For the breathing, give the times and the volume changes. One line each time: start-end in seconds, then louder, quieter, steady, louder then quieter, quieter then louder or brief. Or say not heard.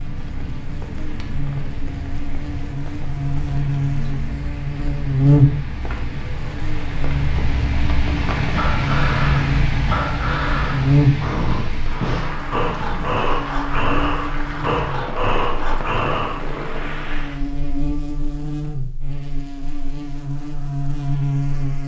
8.5-16.4 steady.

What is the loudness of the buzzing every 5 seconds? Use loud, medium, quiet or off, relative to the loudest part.
medium, loud, loud, medium, loud.